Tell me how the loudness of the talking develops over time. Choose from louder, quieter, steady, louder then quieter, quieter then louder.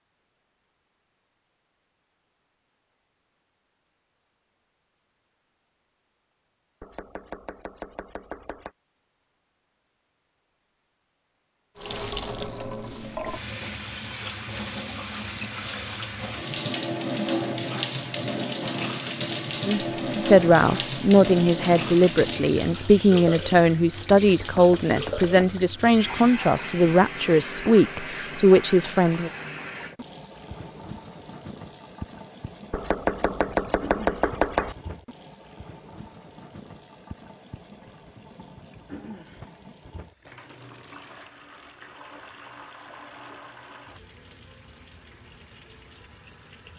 steady.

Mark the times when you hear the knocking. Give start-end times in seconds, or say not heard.
6.8-8.7, 24.4-25.6, 32.7-34.8.